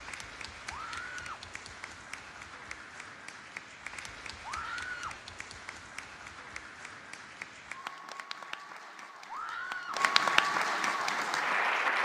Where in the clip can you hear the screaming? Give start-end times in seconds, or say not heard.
0.7-1.4, 4.4-5.2, 9.2-10.1.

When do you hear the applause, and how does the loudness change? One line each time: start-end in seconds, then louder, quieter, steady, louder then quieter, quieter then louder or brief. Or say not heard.
0.0-12.0 louder.